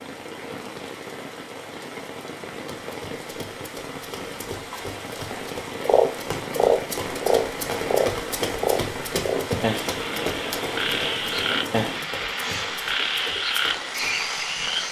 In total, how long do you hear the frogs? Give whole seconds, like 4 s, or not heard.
9 s.